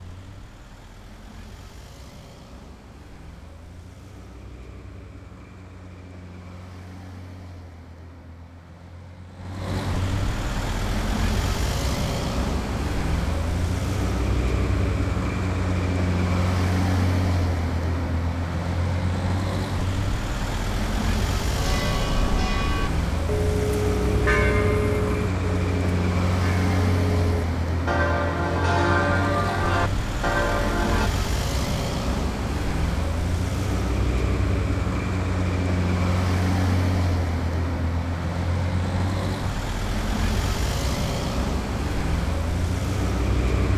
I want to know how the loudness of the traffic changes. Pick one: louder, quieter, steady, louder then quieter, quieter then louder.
louder.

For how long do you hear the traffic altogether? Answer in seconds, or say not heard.
44 s.